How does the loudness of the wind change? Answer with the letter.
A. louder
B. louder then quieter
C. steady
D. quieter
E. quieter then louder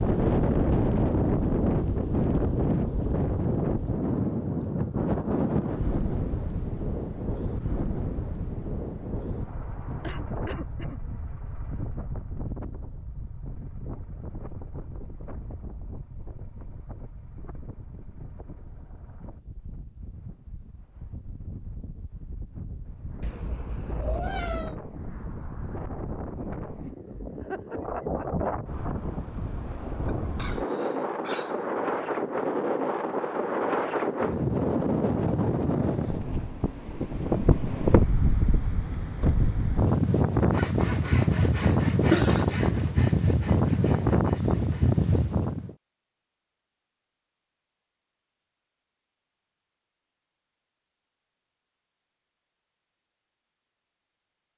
E.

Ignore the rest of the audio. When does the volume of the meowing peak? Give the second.
24 s.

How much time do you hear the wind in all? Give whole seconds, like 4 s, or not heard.
46 s.